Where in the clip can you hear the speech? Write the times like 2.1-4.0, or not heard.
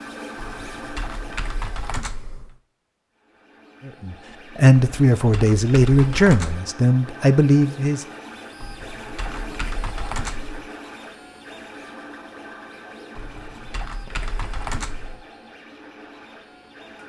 3.9-8.1.